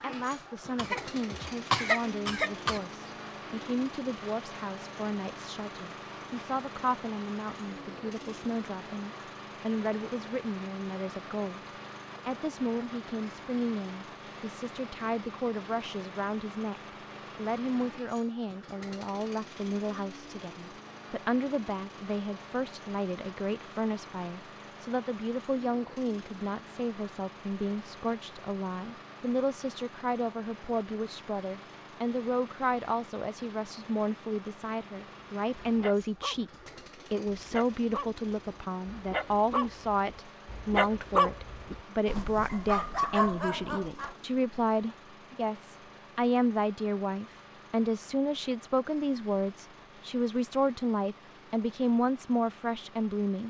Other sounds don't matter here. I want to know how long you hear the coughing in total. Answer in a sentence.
The coughing can be heard for 2 seconds in total.